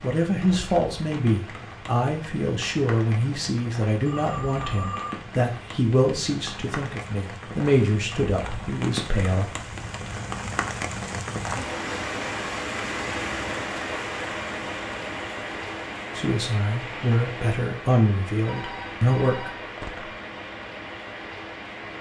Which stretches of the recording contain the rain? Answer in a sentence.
You can hear the rain from 0.0 to 21.9 s.